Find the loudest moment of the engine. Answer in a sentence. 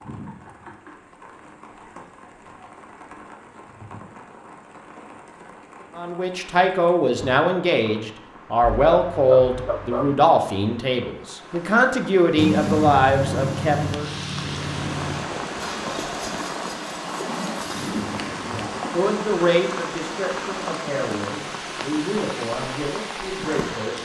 The volume of the engine peaks at 13 seconds.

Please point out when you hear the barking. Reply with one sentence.
The barking can be heard from 8.6 to 10.2 s.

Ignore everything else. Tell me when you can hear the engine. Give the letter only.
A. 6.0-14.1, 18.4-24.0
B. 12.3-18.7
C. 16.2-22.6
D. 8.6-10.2
B.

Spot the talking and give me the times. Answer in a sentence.
The talking can be heard from 6.0 to 14.1 s and from 18.4 to 24.0 s.